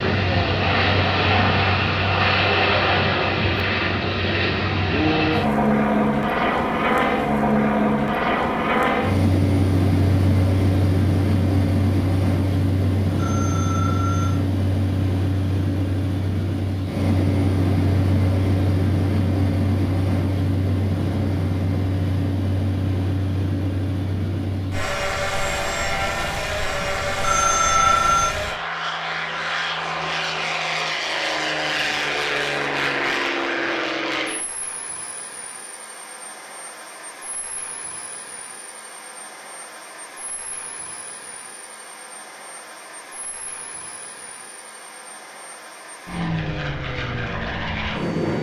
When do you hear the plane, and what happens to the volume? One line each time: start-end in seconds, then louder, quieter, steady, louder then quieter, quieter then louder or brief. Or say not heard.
0.0-48.3 quieter.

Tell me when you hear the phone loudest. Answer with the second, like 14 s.
28 s.